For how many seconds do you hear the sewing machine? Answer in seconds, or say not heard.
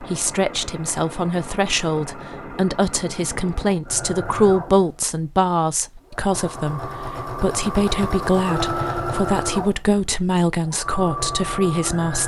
12 s.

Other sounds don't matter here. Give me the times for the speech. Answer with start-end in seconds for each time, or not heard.
0.0-12.2.